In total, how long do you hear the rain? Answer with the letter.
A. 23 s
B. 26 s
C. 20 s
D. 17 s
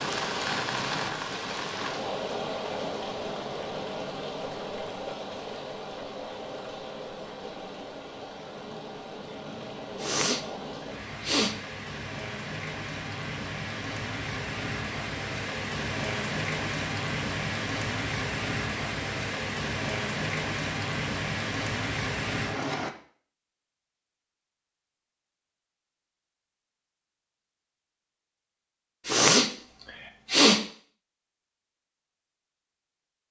A.